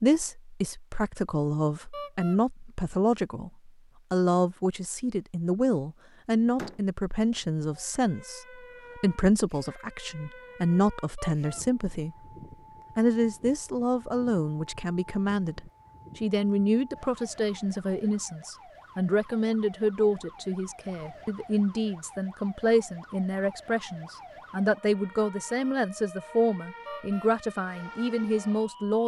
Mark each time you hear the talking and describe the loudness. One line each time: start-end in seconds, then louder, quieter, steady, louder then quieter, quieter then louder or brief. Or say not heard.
0.0-12.2 steady
12.9-29.0 steady.